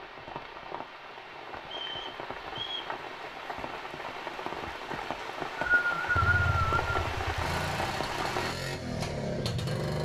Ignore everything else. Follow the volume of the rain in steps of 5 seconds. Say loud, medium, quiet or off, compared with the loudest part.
medium, loud.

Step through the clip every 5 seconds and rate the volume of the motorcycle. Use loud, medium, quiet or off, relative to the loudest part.
off, loud.